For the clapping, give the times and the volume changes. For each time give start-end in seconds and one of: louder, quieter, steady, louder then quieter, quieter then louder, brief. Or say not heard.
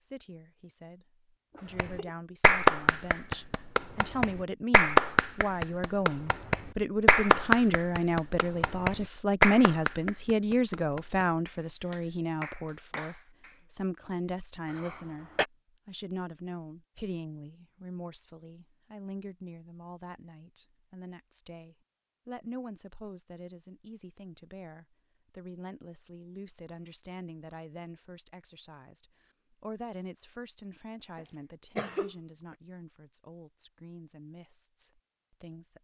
1.8-13.6 quieter.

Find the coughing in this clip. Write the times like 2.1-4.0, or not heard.
1.5-2.1, 14.7-15.4, 31.1-32.1.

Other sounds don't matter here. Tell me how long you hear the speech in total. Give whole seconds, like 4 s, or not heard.
36 s.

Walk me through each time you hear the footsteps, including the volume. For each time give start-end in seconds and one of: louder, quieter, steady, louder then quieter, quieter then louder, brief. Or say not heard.
not heard.